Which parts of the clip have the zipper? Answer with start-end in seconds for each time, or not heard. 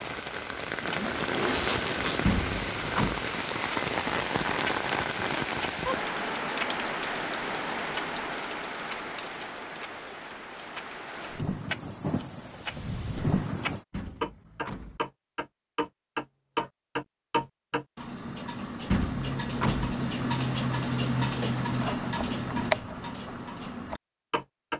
0.8-2.3.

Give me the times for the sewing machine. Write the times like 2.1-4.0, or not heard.
not heard.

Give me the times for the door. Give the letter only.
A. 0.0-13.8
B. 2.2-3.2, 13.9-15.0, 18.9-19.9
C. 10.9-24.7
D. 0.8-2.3
B.